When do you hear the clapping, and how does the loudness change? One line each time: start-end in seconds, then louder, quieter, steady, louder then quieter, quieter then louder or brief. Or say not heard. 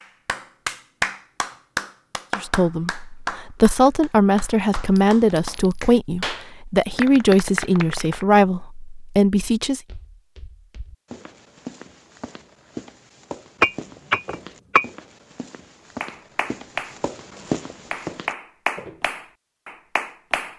0.0-8.2 quieter then louder
16.0-20.5 quieter then louder.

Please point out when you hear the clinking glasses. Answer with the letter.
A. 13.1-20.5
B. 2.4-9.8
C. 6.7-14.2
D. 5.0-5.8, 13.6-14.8
D.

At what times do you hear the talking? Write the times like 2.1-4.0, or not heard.
2.4-9.8.